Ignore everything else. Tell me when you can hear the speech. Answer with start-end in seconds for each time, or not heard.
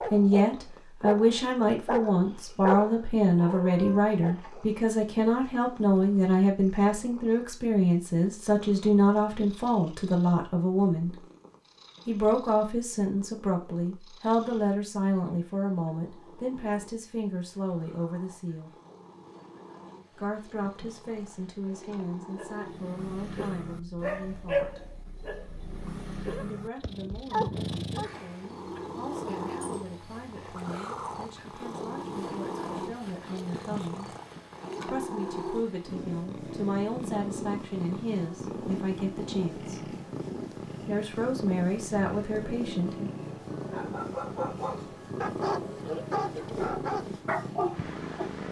0.1-11.2, 12.1-18.7, 20.1-24.8, 26.4-34.1, 34.9-39.9, 40.9-43.1.